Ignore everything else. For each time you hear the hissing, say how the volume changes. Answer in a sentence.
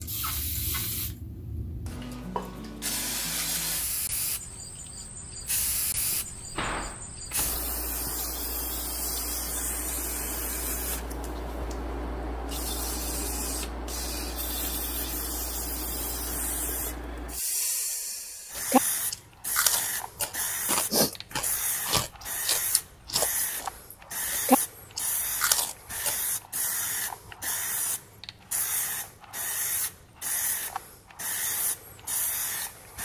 You can hear the hissing from 0.0 to 33.0 s, at a steady volume.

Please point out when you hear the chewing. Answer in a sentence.
The chewing can be heard from 18.6 to 26.2 s.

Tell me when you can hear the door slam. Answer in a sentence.
You can hear the door slam from 6.1 to 7.7 s.